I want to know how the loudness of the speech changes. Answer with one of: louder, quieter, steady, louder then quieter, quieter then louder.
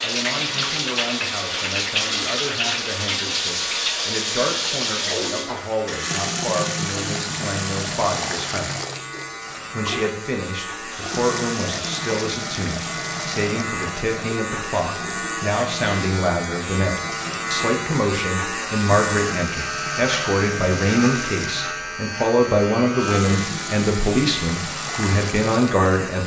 louder.